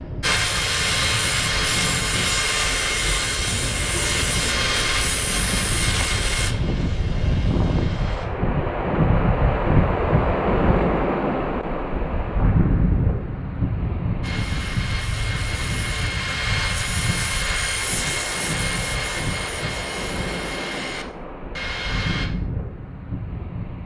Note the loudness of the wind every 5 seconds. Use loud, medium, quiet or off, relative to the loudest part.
medium, loud, loud, medium, medium.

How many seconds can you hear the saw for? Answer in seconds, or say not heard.
16 s.